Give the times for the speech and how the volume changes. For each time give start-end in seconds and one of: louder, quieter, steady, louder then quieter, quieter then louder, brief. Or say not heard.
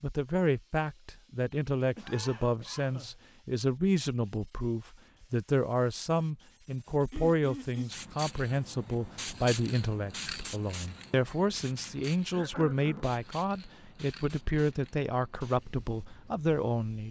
0.0-17.0 steady.